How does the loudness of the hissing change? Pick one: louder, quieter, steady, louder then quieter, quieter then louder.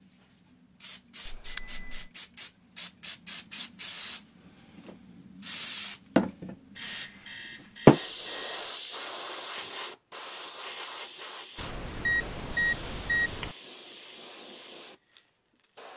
louder then quieter.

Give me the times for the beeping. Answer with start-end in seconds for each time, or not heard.
1.2-2.1, 6.8-8.7, 11.6-13.6.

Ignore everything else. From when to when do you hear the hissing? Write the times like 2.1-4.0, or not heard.
0.0-15.9.